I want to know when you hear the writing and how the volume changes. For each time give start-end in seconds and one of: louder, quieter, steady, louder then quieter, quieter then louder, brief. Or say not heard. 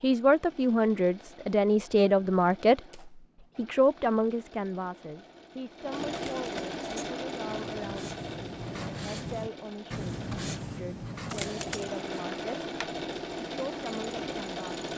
6.8-12.8 louder then quieter.